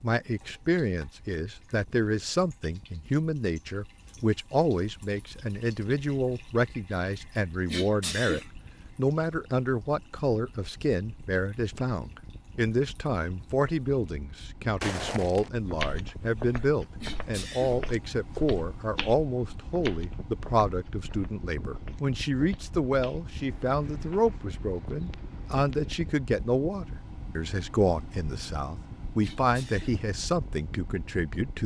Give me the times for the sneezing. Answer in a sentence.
You can hear the sneezing from 7.7 to 8.5 s, from 17.0 to 17.8 s and from 29.2 to 30.0 s.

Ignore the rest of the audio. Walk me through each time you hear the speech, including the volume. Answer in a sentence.
You can hear the speech from 0.0 to 31.6 s, at a steady volume.